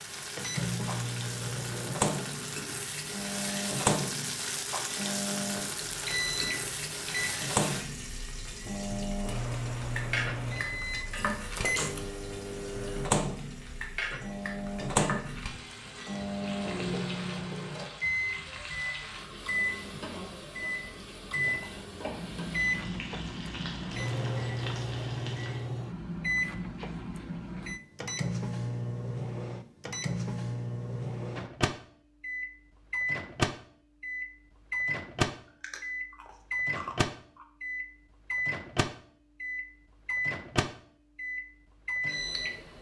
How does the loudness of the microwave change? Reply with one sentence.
The volume of the microwave stays about the same.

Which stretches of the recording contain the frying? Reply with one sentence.
The frying can be heard from 0.0 to 25.6 s.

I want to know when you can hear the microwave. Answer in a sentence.
The microwave can be heard from 0.3 to 42.7 s.